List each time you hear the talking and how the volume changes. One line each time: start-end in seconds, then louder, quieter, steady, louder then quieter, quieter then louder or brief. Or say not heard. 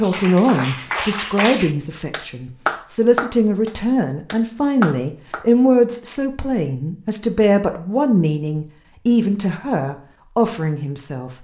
0.0-11.3 steady.